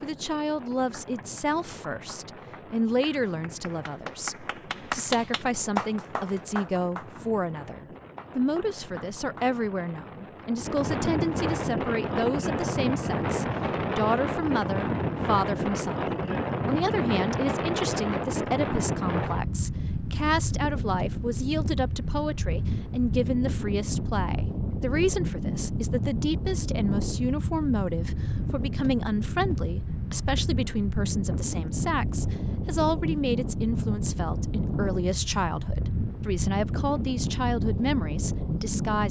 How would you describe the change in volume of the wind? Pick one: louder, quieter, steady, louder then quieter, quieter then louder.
louder.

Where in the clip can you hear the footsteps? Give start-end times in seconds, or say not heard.
not heard.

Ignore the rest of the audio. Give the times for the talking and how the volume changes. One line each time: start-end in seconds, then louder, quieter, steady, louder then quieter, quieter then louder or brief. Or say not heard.
0.0-39.0 steady.